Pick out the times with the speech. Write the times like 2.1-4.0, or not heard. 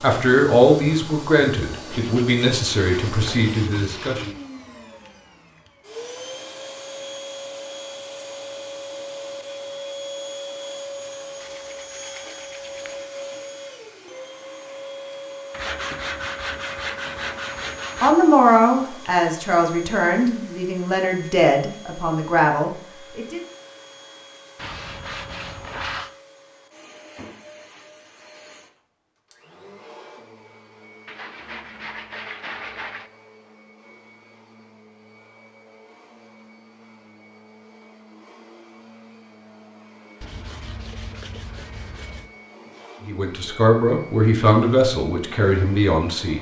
0.0-4.3, 18.0-23.4, 43.0-46.3.